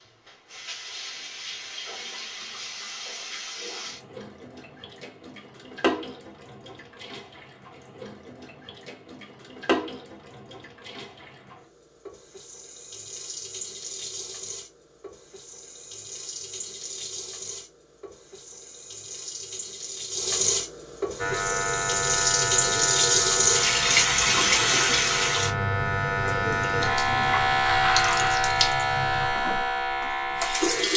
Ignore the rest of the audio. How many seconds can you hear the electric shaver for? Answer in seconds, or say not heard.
10 s.